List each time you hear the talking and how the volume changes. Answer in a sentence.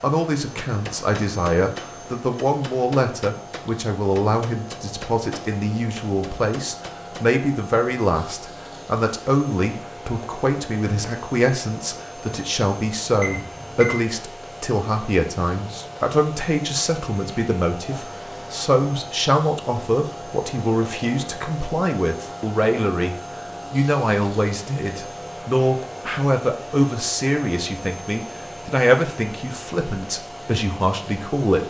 You can hear the talking from 0.0 to 31.6 s, at a steady volume.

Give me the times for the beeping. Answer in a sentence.
The beeping can be heard from 13.2 to 13.9 s.